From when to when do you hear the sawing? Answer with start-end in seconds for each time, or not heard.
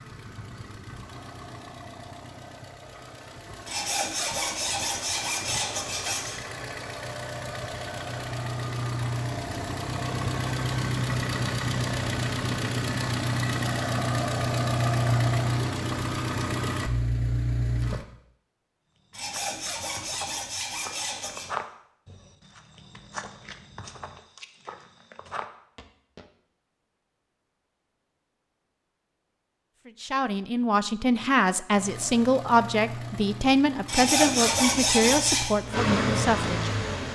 3.6-6.4, 19.1-21.4, 33.9-35.5.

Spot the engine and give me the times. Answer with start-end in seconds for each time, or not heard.
0.0-18.1, 31.7-37.1.